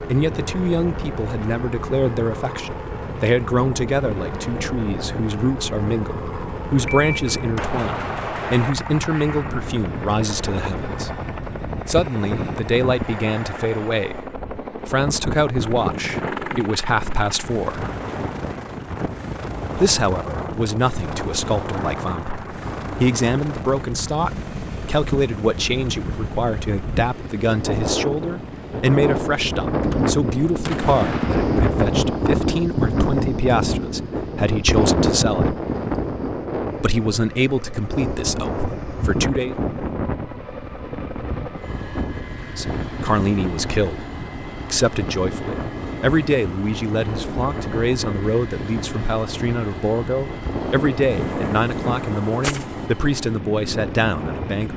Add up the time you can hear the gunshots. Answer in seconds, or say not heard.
6 s.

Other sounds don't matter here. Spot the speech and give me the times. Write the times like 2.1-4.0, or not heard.
0.1-11.1, 11.8-17.9, 19.8-35.6, 36.8-39.5, 42.5-44.0, 44.6-54.7.